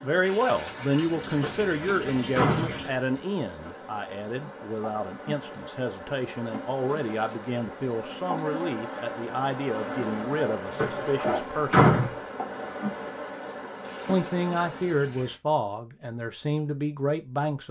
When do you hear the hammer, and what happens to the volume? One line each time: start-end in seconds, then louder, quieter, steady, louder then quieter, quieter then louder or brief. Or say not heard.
not heard.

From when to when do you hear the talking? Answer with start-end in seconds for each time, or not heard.
0.0-11.9, 14.1-17.6.